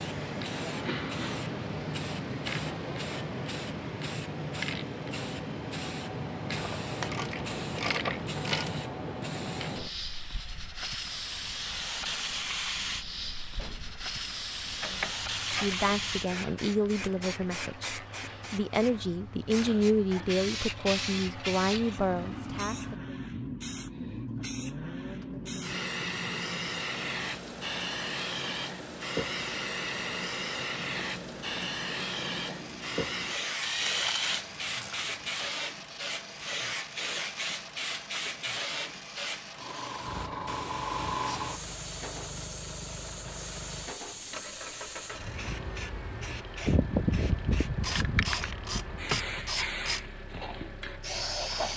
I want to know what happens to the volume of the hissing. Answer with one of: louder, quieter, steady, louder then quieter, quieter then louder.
steady.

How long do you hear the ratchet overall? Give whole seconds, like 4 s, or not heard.
8 s.